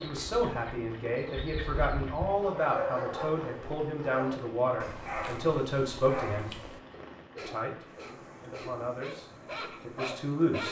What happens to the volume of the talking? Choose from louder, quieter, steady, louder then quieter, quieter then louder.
steady.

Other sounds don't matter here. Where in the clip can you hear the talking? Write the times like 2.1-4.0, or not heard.
0.0-6.5, 7.5-10.6.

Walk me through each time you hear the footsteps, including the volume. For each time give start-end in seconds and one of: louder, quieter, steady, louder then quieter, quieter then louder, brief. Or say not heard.
not heard.